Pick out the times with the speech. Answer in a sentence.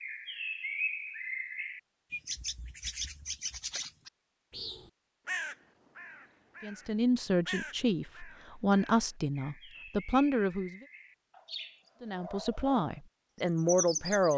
The speech can be heard from 6.6 to 10.8 s and from 12.0 to 14.3 s.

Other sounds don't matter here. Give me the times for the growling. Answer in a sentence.
The growling can't be heard in this clip.